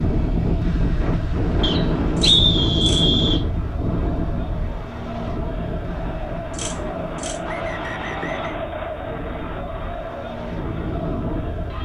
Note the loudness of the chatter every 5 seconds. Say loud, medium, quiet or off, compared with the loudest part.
medium, loud, loud.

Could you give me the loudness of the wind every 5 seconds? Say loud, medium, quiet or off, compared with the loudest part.
loud, medium, medium.